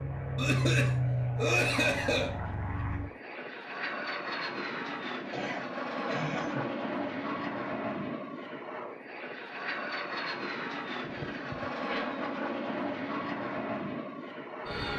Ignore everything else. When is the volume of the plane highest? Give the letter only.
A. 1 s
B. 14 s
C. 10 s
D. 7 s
A.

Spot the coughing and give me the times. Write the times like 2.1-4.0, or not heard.
0.3-2.4, 5.3-6.7, 11.0-12.1.